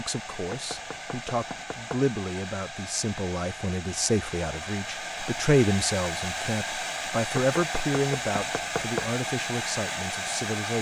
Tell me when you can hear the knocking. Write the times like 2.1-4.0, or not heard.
0.5-2.0, 7.3-9.1.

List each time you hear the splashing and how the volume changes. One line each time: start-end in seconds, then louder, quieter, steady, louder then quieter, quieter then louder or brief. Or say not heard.
not heard.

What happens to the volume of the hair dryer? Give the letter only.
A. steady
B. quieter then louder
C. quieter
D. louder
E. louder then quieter
D.